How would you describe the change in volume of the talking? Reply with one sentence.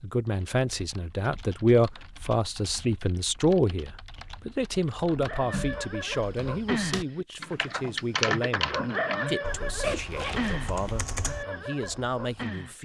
The loudness of the talking goes down.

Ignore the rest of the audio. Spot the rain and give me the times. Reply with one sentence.
The rain can't be heard in this clip.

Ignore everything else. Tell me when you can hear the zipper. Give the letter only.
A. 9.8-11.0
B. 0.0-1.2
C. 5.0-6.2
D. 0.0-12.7
A.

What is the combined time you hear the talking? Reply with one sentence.
The talking can be heard for 13 seconds in total.